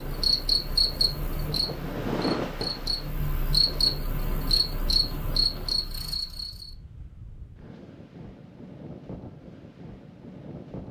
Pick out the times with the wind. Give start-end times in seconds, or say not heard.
0.0-10.8.